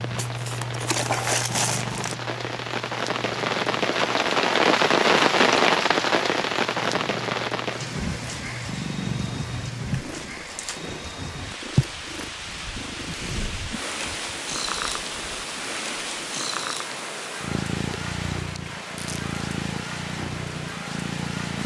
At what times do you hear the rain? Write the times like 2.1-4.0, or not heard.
0.0-21.6.